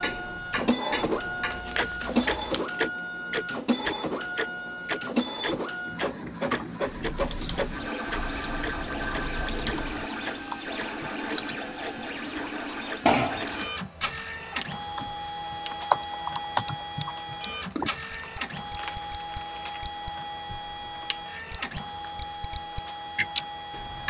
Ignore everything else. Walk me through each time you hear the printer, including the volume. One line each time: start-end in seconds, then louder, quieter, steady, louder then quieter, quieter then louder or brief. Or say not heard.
0.0-24.0 quieter.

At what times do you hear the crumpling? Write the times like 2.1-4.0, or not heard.
1.5-2.6, 13.1-13.8, 17.1-19.9.